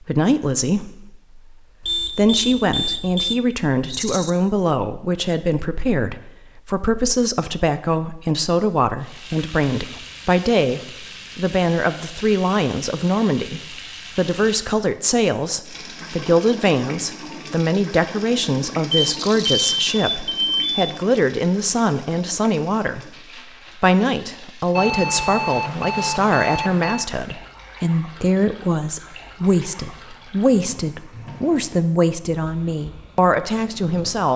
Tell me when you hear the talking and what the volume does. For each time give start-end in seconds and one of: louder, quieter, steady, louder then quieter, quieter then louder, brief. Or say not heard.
0.0-23.1 steady
23.8-34.3 steady.